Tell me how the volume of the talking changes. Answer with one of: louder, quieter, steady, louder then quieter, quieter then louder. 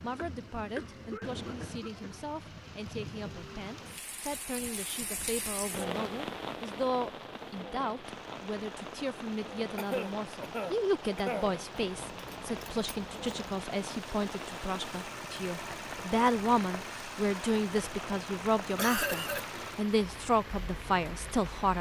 louder.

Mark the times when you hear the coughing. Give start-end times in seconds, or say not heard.
0.1-2.1, 9.8-11.6, 18.8-19.5.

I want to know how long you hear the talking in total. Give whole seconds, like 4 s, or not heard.
22 s.